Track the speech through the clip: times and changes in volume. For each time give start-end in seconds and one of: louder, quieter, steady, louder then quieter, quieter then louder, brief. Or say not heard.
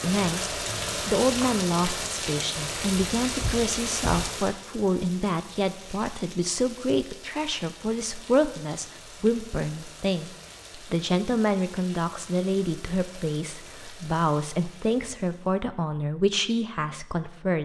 0.0-17.5 steady.